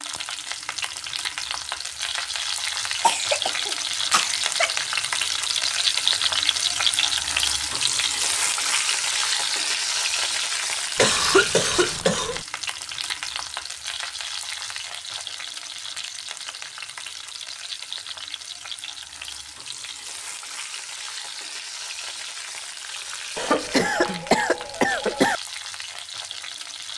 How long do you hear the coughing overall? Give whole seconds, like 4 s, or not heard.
5 s.